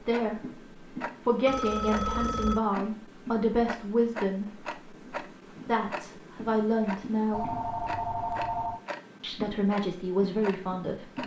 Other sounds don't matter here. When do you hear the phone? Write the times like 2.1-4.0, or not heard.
1.4-2.6, 7.3-8.8.